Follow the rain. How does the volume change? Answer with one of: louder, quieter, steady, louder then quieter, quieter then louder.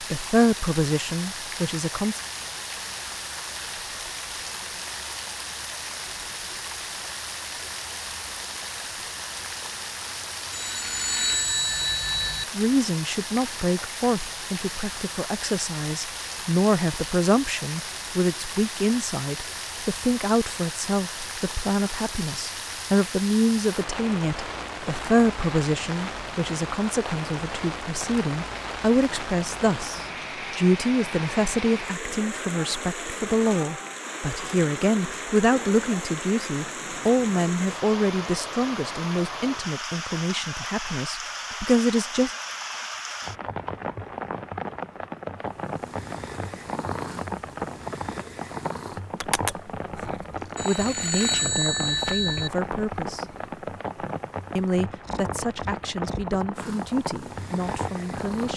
steady.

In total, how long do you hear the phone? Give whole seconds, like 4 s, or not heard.
4 s.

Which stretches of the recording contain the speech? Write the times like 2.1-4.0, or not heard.
0.0-2.2, 12.5-42.4, 50.0-53.2, 54.5-58.5.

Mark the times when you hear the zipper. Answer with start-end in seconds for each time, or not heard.
not heard.